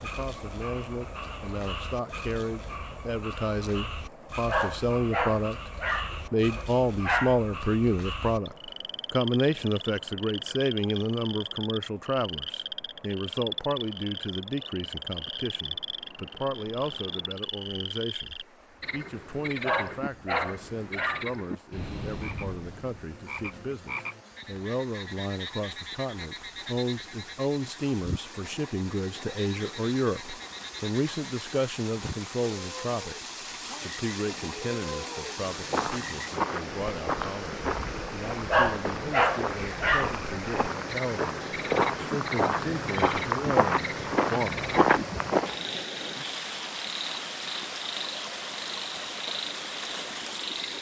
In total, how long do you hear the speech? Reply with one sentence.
You can hear the speech for 45 seconds altogether.